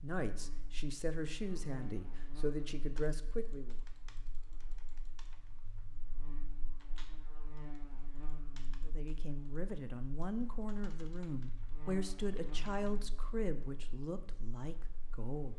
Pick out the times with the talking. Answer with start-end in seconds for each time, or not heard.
0.0-3.8, 8.8-15.5.